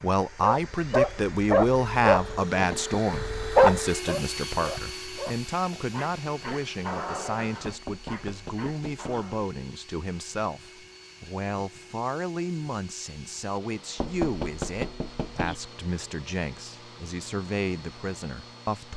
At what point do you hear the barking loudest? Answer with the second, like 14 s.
4 s.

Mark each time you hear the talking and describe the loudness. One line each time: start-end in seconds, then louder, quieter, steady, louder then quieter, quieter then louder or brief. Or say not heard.
0.0-18.9 quieter.